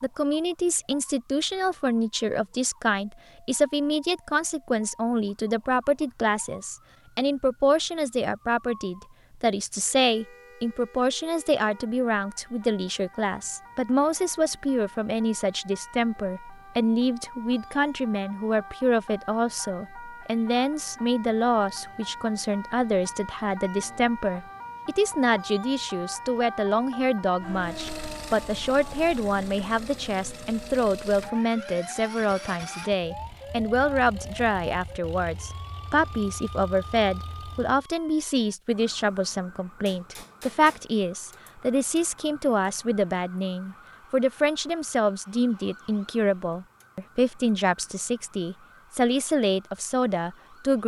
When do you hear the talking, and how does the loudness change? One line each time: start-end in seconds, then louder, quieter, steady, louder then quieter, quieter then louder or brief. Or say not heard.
0.0-50.8 steady.